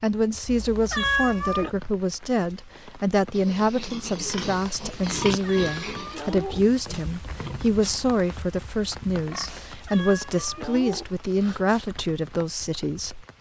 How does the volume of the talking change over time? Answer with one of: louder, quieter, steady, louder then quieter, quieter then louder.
steady.